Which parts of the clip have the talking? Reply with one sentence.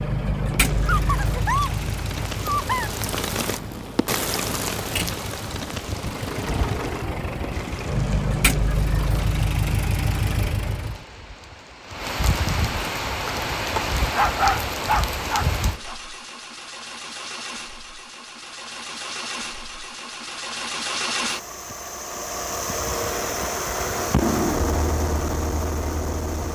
The talking can't be heard in this clip.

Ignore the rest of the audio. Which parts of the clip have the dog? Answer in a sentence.
You can hear the dog from 0.8 to 2.9 s and from 14.2 to 15.9 s.